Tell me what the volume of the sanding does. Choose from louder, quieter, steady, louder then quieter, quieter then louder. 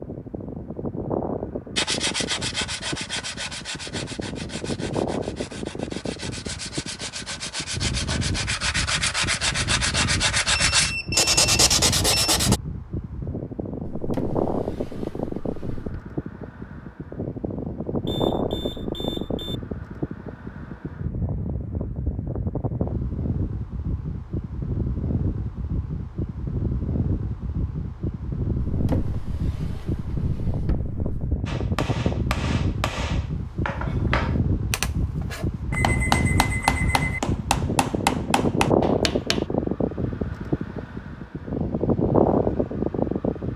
quieter then louder.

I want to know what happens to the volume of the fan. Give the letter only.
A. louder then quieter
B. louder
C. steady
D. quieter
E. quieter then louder
B.